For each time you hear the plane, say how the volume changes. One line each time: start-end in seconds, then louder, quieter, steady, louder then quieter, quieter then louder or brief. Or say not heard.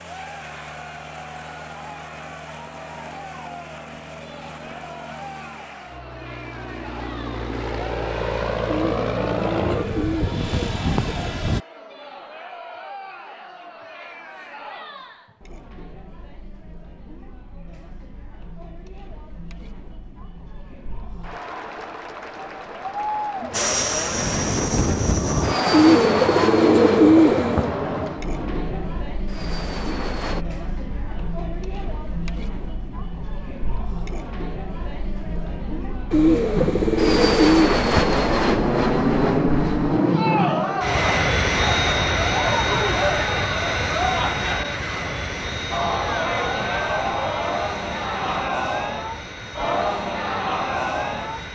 0.0-11.6 louder
23.5-30.4 quieter
36.5-51.4 quieter.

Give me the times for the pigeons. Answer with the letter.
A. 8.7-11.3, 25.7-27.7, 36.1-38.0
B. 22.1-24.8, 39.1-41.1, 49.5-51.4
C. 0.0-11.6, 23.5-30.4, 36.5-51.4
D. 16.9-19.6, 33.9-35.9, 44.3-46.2
A.